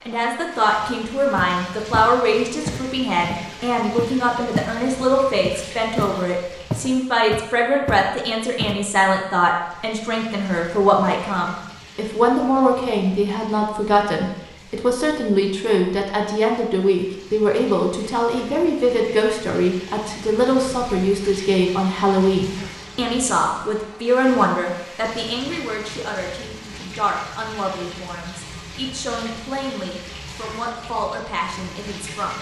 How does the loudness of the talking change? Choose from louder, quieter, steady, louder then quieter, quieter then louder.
quieter.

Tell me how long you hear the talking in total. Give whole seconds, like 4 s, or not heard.
32 s.